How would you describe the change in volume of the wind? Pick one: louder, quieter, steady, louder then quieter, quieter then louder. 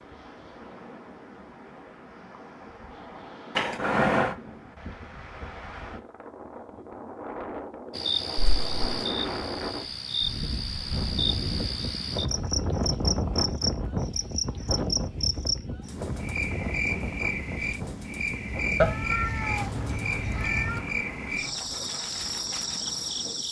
louder then quieter.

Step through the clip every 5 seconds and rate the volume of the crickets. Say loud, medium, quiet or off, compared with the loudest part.
off, loud, loud, loud, loud.